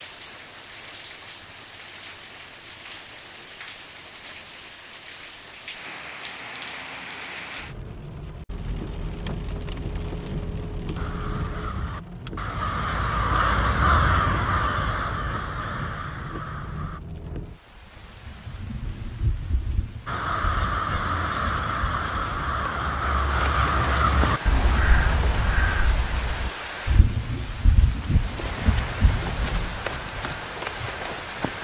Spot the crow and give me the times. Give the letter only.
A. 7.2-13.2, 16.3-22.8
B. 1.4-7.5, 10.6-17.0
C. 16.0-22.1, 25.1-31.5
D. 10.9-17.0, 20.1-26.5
D.